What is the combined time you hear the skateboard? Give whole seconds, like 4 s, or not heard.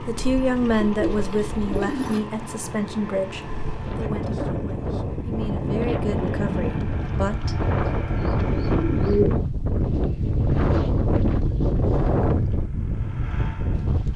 not heard.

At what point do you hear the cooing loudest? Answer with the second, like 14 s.
9 s.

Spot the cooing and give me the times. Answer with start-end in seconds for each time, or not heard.
0.7-2.2, 7.8-9.4.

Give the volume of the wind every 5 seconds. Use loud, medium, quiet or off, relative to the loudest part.
medium, loud, loud.